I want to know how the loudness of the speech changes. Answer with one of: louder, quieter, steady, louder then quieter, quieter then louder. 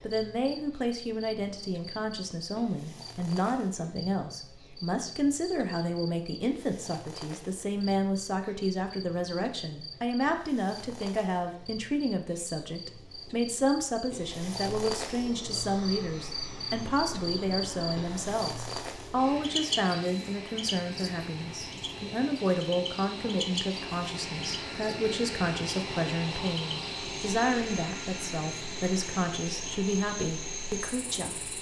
steady.